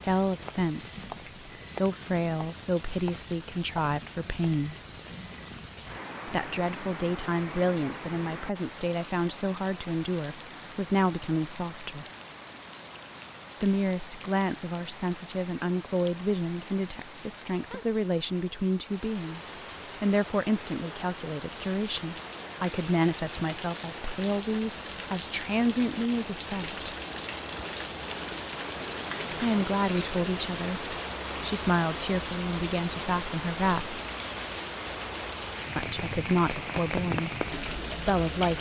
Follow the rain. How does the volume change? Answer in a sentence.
The volume of the rain goes up.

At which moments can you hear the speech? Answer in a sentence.
The speech can be heard from 0.0 to 4.8 s, from 6.2 to 12.1 s, from 13.6 to 26.9 s, from 29.3 to 34.0 s, from 35.8 to 37.3 s and from 37.9 to 38.5 s.